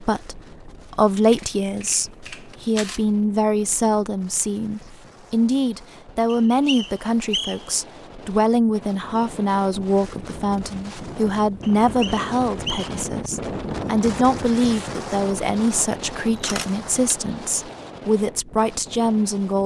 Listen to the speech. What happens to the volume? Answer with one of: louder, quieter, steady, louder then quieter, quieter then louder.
steady.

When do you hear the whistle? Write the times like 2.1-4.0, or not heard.
6.2-7.8, 11.6-12.9.